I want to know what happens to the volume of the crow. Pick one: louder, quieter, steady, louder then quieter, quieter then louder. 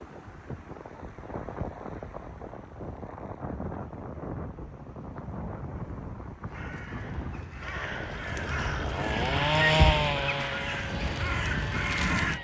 louder.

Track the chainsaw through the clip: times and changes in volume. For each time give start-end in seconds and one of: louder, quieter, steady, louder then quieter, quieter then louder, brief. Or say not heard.
7.5-12.3 louder then quieter.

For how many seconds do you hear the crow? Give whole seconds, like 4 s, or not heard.
6 s.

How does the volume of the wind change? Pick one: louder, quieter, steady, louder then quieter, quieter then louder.
steady.